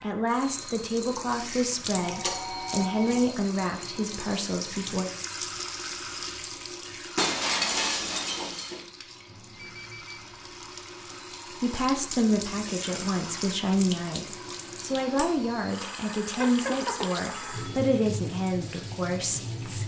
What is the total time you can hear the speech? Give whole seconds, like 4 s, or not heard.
13 s.